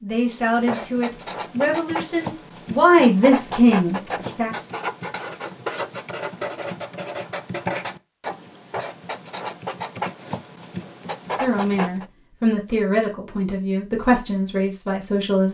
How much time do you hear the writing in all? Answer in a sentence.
You can hear the writing for 12 seconds altogether.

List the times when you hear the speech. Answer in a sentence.
The speech can be heard from 0.0 to 4.7 s and from 11.4 to 15.4 s.